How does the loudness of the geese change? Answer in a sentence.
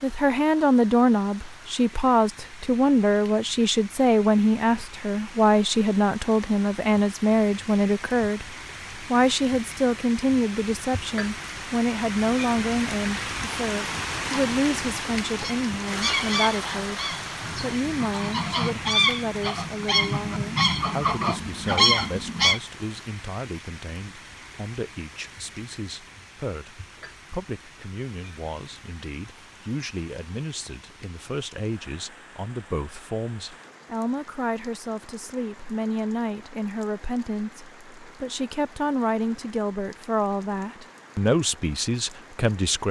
The loudness of the geese goes down, then up.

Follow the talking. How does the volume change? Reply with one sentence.
The loudness of the talking goes down, then up.